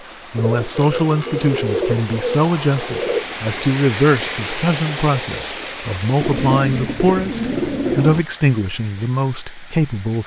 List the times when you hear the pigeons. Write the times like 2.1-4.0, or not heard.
0.3-3.2, 6.2-8.2.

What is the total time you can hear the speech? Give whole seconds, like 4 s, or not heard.
10 s.